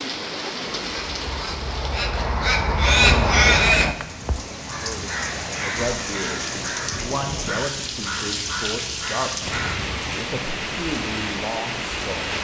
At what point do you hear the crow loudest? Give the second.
4 s.